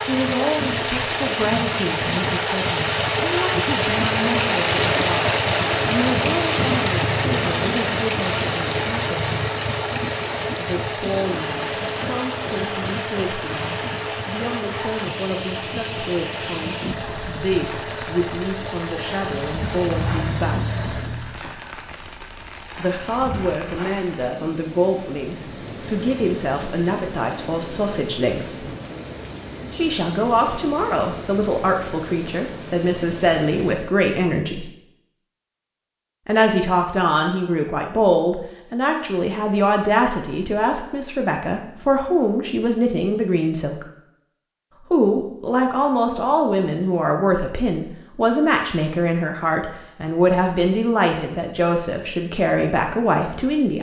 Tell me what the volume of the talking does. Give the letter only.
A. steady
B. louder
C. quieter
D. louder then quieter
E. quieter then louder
B.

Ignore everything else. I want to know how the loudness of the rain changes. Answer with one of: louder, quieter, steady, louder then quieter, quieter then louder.
quieter.